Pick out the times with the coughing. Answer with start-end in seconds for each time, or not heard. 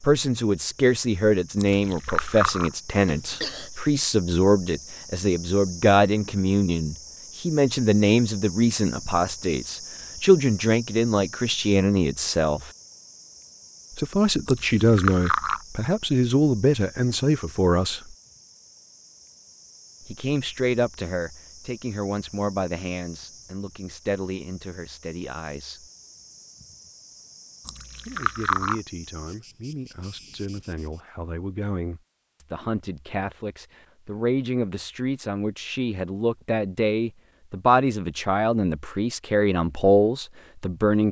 3.0-3.7.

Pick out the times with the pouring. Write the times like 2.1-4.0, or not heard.
1.6-2.7, 14.4-15.6, 27.6-28.8.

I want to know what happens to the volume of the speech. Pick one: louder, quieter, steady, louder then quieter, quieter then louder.
quieter then louder.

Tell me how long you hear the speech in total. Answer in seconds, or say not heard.
36 s.